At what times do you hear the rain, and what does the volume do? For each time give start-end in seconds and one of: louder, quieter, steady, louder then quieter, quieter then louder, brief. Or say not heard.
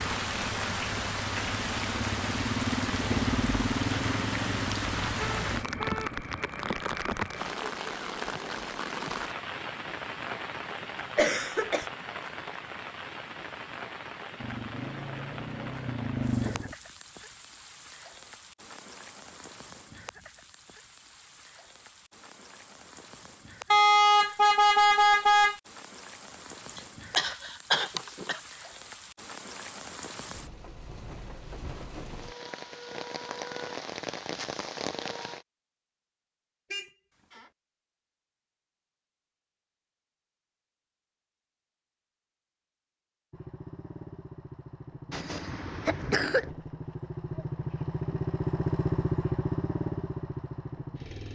0.0-35.5 quieter then louder.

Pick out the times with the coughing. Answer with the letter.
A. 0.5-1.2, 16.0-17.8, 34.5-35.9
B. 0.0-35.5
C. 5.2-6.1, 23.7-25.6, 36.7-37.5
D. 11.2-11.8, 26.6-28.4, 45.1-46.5
D.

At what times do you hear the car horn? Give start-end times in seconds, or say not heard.
5.2-6.1, 23.7-25.6, 36.7-37.5.